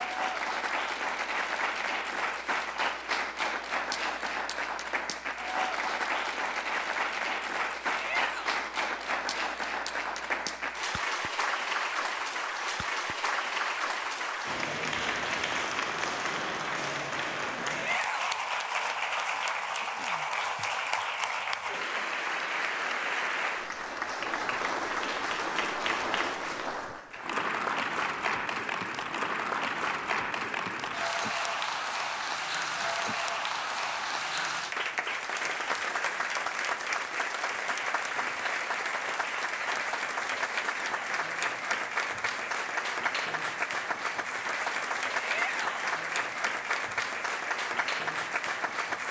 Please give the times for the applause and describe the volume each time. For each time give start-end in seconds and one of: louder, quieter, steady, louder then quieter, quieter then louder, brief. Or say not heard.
0.0-49.0 steady.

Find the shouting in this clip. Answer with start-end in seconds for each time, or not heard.
7.9-8.6, 17.6-18.4, 45.1-46.0.